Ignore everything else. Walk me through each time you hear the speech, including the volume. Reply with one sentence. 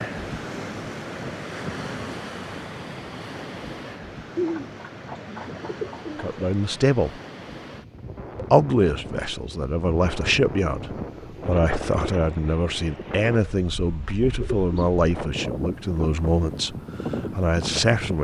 The speech can be heard briefly from 6.2 to 7.2 s; and from 8.3 to 18.1 s, at a steady volume.